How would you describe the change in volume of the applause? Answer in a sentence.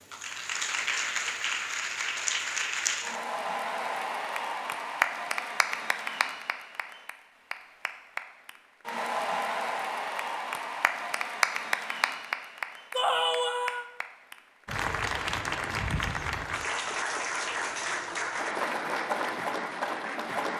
The loudness of the applause stays about the same.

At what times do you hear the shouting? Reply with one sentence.
The shouting can be heard from 12.9 to 13.9 s.